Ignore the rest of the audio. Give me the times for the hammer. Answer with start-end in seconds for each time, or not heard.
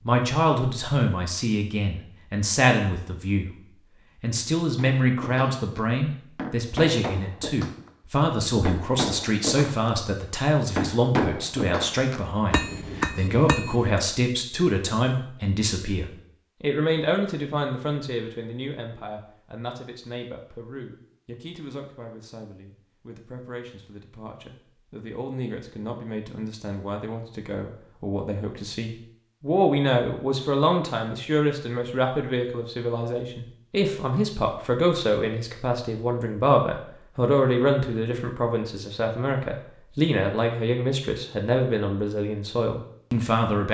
4.8-7.9, 8.7-9.9, 10.8-14.0.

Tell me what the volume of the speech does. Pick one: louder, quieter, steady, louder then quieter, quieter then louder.
quieter then louder.